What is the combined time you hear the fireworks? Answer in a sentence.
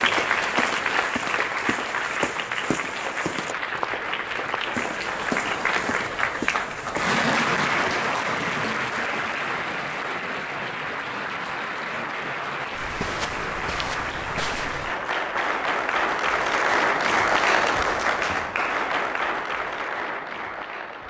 The fireworks can't be heard in this clip.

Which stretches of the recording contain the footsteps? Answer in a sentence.
You can hear the footsteps from 0.0 to 7.2 s and from 12.8 to 14.9 s.